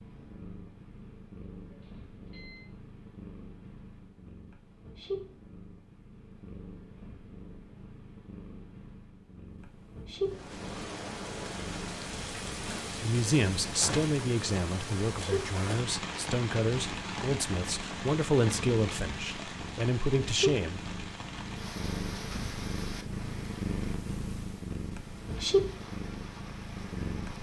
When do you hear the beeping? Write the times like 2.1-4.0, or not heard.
1.7-2.7.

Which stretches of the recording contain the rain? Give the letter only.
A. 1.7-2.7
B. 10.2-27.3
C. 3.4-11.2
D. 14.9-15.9
B.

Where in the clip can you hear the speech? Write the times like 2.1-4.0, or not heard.
13.0-20.8.